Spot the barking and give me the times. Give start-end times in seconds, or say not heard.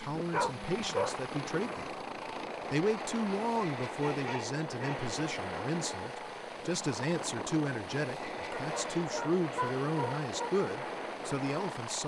0.3-1.1, 4.0-5.1, 8.5-10.5.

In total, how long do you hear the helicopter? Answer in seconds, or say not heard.
12 s.